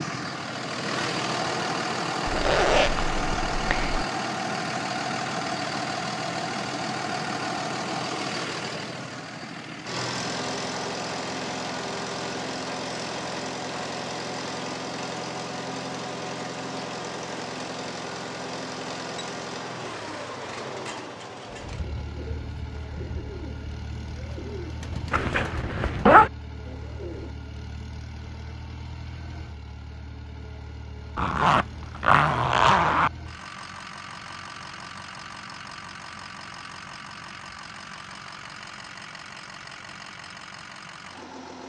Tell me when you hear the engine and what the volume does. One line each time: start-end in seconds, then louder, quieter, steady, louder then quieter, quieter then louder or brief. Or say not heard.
0.0-41.6 quieter.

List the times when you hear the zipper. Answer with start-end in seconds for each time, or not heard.
2.2-4.0, 25.1-26.3, 31.1-33.1.